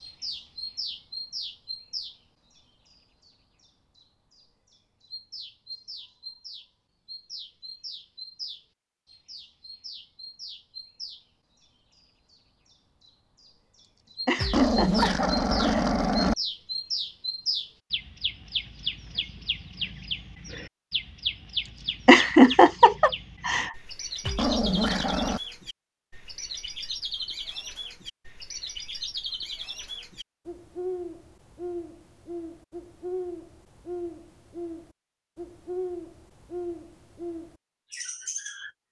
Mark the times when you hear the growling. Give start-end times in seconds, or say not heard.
14.3-16.4, 24.2-25.4.